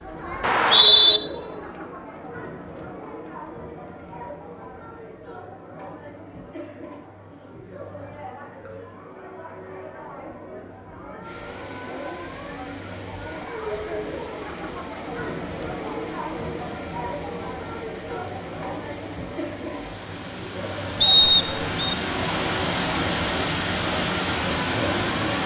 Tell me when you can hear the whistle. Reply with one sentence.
The whistle can be heard from 0.4 to 1.2 s and from 21.0 to 21.9 s.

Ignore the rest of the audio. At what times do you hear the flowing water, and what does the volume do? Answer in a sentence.
You can hear the flowing water from 11.2 to 25.4 s, getting louder.